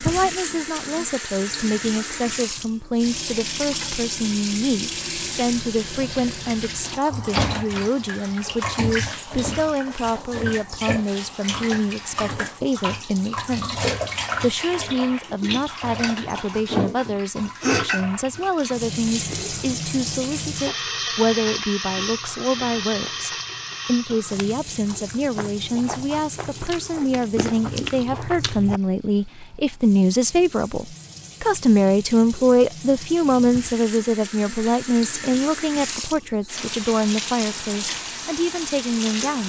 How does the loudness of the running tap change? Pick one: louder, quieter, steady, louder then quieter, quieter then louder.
quieter then louder.